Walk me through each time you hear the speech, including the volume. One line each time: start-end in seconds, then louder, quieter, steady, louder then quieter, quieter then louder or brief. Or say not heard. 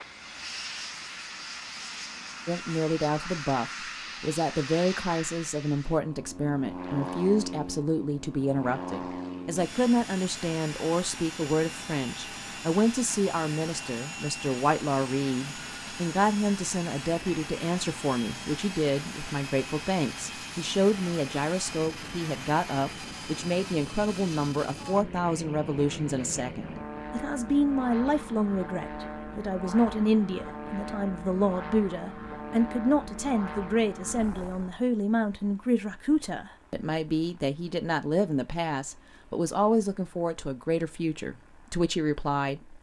2.5-42.6 steady.